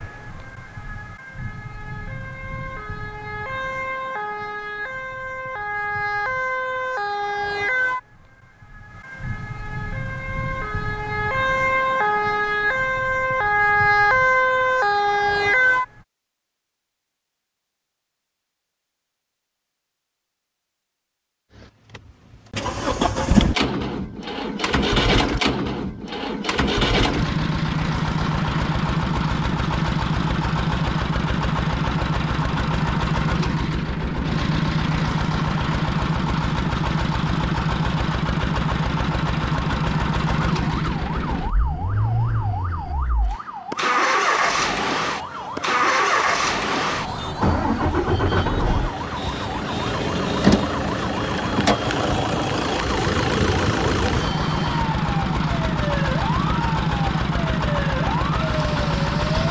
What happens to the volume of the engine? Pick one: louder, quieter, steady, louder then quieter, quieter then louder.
steady.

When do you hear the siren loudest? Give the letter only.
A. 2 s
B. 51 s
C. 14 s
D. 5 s
C.